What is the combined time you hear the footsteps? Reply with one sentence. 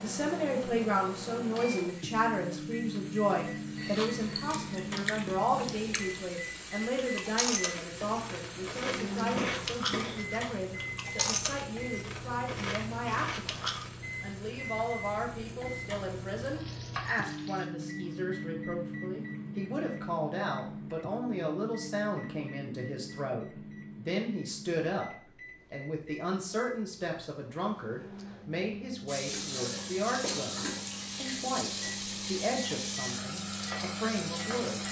You can't hear the footsteps here.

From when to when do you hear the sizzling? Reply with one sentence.
You can hear the sizzling from 0.0 to 17.7 s and from 29.1 to 34.8 s.